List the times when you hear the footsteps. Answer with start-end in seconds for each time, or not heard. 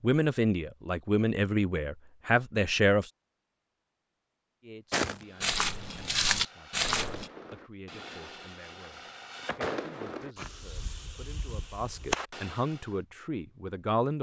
4.9-7.3.